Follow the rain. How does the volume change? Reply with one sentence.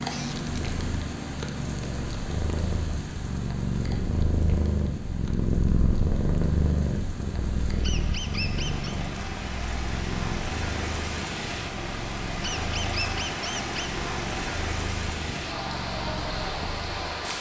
The volume of the rain goes down, then up.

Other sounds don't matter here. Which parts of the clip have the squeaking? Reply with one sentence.
The squeaking can be heard from 0.0 to 0.8 s, from 7.8 to 9.0 s and from 12.4 to 13.7 s.